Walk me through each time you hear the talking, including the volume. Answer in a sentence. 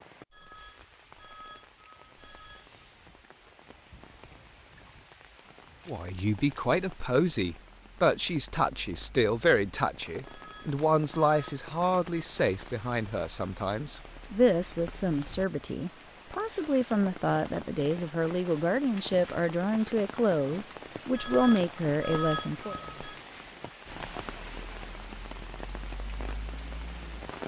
The talking can be heard from 5.8 to 22.8 s, at a steady volume.